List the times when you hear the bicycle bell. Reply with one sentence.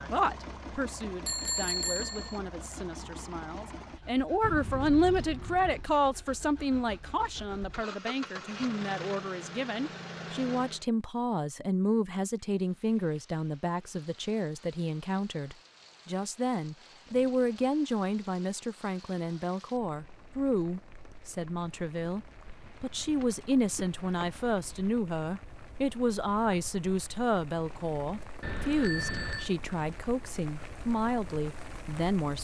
You can hear the bicycle bell from 1.2 to 2.4 s and from 28.4 to 29.5 s.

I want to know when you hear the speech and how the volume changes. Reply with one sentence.
You can hear the speech from 0.0 to 32.3 s, at a steady volume.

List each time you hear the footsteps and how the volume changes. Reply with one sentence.
The footsteps can't be heard in this clip.